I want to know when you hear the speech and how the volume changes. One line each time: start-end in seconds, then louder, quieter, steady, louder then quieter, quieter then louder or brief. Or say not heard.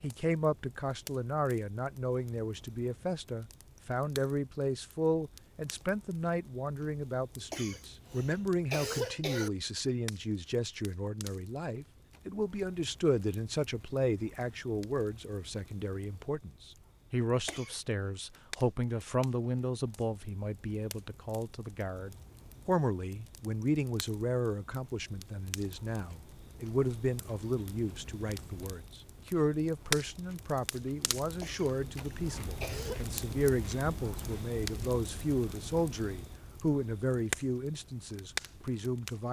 0.0-39.2 steady.